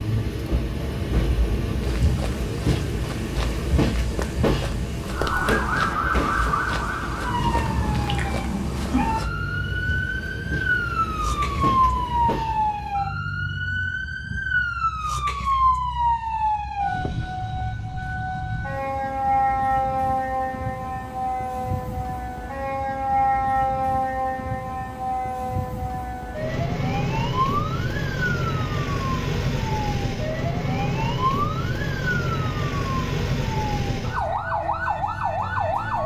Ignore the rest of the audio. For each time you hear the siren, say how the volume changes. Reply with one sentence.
The siren can be heard from 5.1 to 36.0 s, at a steady volume.